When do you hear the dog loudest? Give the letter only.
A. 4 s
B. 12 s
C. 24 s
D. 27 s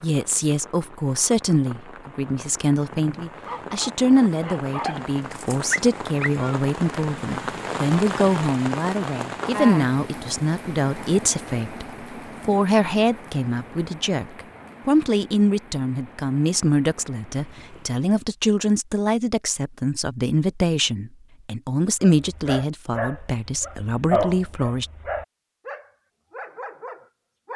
C.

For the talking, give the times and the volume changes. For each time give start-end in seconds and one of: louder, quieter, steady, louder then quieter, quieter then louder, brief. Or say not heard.
0.0-24.9 steady.